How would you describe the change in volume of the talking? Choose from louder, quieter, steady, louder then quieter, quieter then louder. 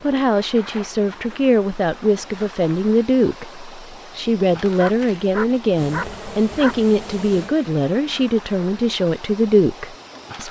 steady.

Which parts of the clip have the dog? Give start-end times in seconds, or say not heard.
4.6-6.8.